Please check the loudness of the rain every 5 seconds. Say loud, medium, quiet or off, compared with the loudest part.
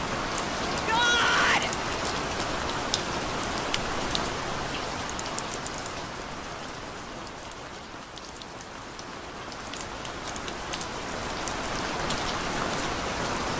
loud, medium, loud.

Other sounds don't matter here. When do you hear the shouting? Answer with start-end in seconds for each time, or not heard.
0.7-1.7.